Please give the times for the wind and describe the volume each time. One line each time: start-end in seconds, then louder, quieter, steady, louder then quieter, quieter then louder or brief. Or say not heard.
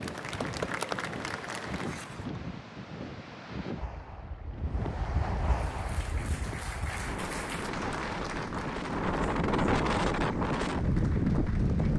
0.0-11.9 louder.